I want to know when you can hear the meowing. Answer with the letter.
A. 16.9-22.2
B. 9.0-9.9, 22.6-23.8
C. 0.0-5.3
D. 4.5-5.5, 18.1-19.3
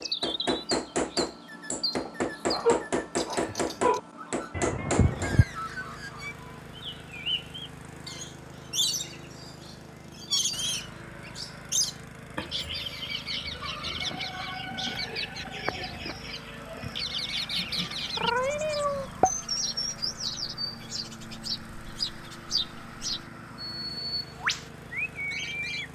D.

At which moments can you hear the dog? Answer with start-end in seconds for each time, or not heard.
2.0-4.0.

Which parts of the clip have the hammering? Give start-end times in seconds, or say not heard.
0.0-5.3.